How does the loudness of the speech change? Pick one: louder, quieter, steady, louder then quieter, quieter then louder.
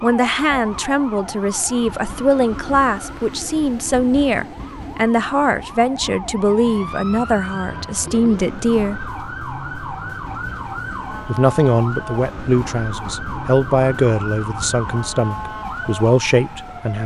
steady.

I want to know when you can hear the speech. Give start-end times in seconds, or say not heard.
0.0-9.0, 11.2-17.0.